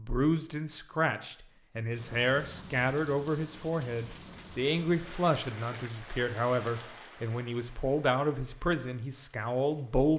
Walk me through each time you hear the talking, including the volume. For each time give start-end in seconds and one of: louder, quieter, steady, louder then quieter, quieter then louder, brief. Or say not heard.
0.0-10.1 steady.